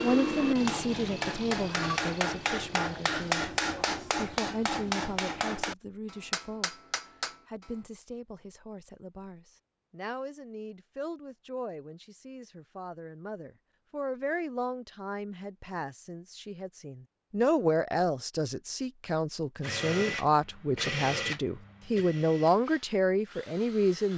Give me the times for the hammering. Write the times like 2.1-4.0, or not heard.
0.6-7.8.